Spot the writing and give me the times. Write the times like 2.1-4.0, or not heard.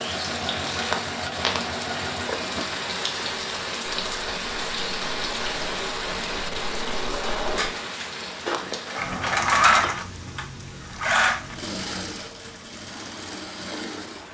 not heard.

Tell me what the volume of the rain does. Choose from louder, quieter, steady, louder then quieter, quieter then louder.
quieter.